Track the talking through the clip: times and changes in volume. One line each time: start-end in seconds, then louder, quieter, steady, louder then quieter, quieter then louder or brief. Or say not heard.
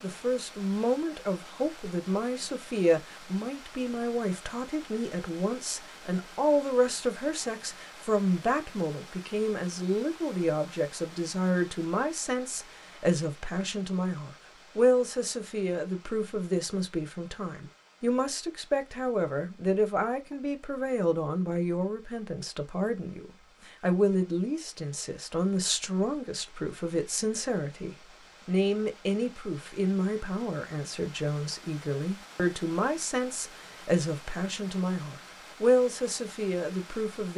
0.0-37.3 steady.